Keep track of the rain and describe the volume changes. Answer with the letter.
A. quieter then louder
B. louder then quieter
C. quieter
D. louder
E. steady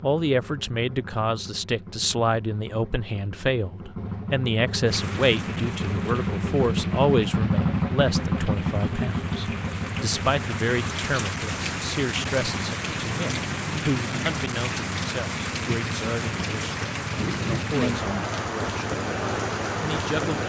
D.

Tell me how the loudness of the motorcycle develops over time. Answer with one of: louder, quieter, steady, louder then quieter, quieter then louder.
louder then quieter.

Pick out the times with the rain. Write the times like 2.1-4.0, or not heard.
4.8-20.4.